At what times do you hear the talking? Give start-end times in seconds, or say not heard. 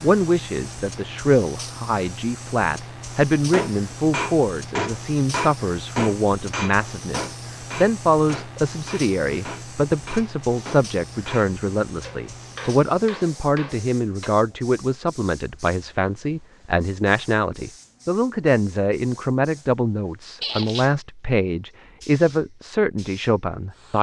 0.0-23.9.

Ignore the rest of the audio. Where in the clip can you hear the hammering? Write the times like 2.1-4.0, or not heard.
3.5-14.3.